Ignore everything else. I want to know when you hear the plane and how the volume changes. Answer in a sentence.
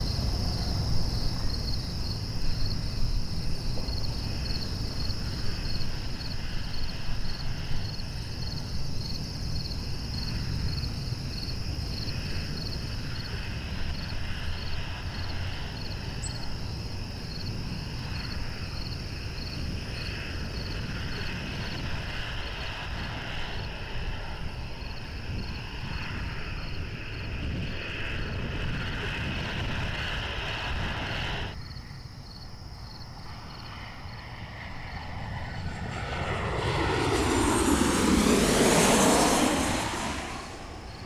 You can hear the plane from 0.0 to 41.0 s, getting louder.